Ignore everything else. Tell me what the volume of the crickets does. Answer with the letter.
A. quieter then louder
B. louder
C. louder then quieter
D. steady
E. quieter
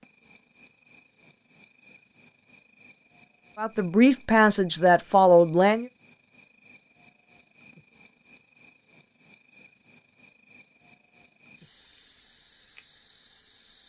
D.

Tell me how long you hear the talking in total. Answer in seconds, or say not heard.
2 s.